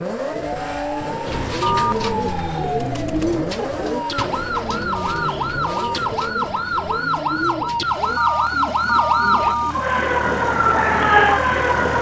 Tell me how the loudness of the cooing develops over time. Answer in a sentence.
The loudness of the cooing goes down.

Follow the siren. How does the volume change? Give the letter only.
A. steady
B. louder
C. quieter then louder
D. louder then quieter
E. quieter
B.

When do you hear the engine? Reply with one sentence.
The engine can be heard from 0.0 to 11.9 s.